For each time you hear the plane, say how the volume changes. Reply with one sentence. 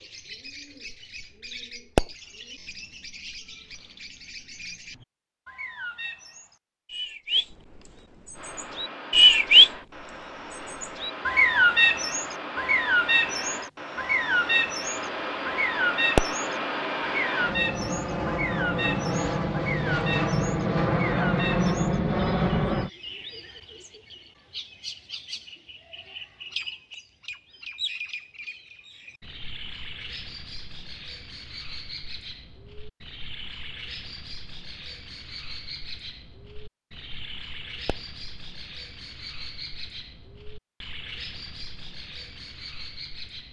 You can hear the plane from 8.3 to 22.9 s, getting louder.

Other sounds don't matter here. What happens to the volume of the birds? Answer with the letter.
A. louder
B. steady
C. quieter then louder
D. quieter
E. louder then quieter
E.